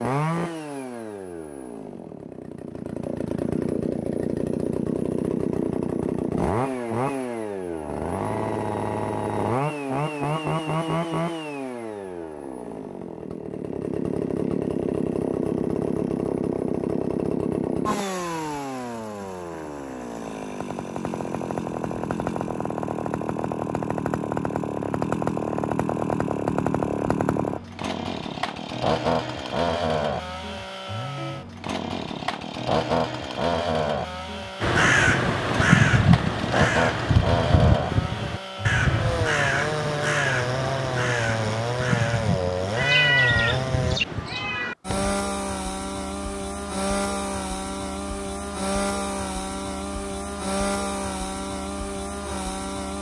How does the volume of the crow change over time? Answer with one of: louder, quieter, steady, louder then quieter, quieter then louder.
quieter.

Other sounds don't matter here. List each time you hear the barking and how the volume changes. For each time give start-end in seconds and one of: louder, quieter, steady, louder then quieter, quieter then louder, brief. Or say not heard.
not heard.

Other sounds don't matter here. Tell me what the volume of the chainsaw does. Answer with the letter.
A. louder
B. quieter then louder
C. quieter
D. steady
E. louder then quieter
D.